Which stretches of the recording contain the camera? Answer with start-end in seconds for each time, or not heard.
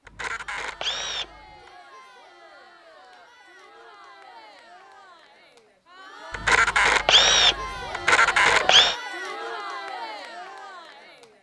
0.1-1.7, 6.3-8.9.